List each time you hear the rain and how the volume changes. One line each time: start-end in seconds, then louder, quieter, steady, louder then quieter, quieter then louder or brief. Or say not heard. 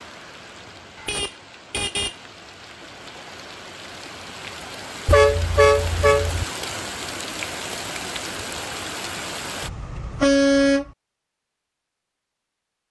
0.0-9.7 louder.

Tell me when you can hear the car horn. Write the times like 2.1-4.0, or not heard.
0.9-2.1, 5.0-6.5, 9.6-10.9.